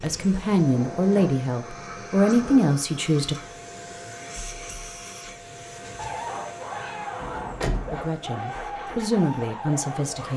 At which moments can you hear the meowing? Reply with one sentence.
You can't hear the meowing here.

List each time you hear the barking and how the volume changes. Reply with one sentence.
The barking can be heard from 6.0 to 10.3 s, at a steady volume.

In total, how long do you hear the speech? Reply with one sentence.
You can hear the speech for 6 seconds altogether.